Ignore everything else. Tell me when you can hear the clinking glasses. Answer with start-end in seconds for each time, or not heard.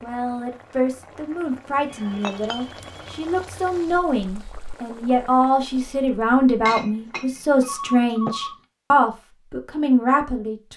2.2-2.7, 6.6-8.3.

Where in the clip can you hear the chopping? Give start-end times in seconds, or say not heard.
not heard.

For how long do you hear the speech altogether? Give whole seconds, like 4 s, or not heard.
11 s.